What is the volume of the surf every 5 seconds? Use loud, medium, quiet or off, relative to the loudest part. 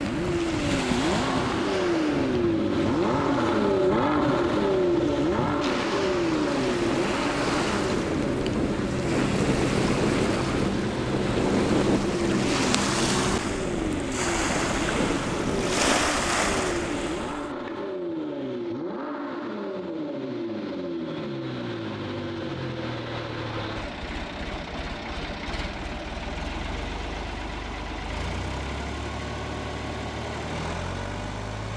medium, loud, loud, loud, off, off, off.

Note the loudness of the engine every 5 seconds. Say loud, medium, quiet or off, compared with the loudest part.
loud, loud, medium, medium, medium, medium, medium.